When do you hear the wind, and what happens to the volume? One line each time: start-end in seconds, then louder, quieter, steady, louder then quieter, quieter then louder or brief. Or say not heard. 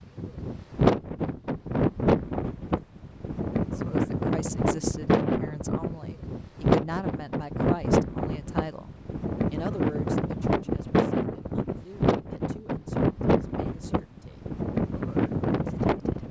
0.1-16.2 steady.